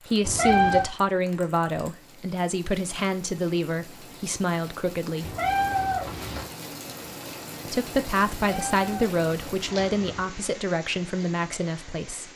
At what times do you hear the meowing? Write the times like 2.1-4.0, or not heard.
0.2-0.8, 5.2-6.5, 8.4-10.2.